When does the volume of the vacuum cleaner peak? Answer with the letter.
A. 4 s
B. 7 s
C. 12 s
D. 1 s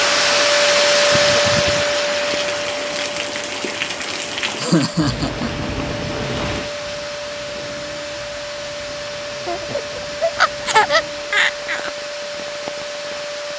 D.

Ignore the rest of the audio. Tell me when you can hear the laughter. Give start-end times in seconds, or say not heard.
1.1-1.9, 4.5-5.7, 9.4-11.9.